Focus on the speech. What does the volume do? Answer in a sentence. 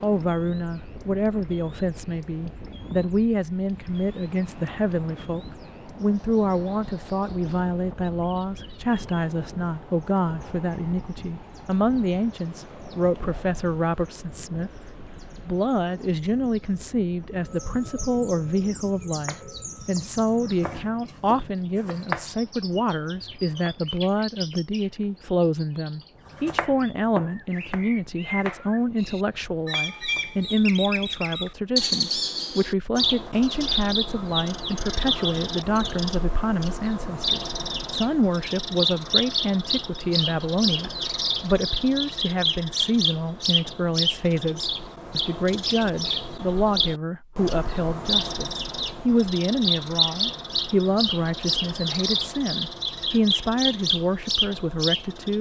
The volume of the speech stays about the same.